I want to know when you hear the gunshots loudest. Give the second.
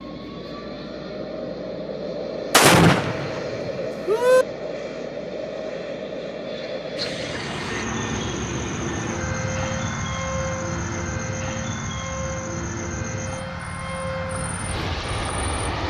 3 s.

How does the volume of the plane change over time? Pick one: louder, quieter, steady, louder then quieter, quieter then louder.
steady.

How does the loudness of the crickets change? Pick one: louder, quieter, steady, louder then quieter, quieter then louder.
quieter.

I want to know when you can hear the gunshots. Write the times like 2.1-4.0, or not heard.
2.5-4.5.